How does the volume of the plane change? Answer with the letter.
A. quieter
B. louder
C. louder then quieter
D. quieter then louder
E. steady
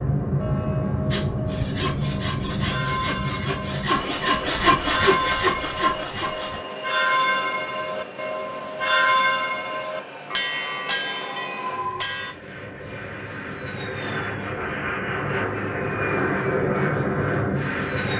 D.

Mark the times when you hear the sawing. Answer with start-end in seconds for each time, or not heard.
1.1-6.6.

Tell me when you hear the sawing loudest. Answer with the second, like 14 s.
5 s.